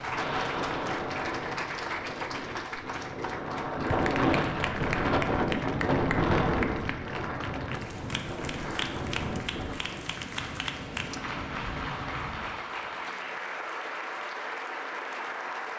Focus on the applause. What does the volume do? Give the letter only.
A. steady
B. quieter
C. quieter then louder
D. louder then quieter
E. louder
A.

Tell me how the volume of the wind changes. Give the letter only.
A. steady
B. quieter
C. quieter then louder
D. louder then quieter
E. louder
D.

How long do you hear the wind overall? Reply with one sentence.
The wind can be heard for 13 seconds in total.